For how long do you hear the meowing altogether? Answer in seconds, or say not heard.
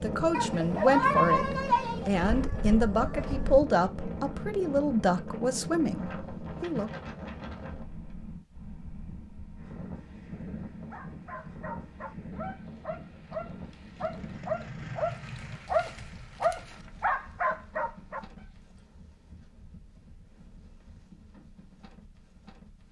2 s.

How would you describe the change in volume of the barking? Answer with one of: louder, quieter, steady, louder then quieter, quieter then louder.
louder.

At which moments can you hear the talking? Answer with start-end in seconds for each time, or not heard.
0.0-6.9.